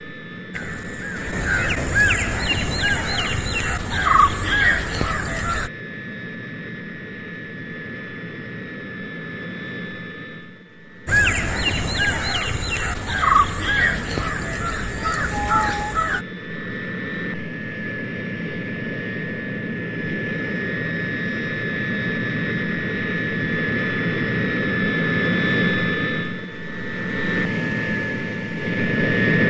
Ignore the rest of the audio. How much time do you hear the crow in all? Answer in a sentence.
You can hear the crow for 10 seconds altogether.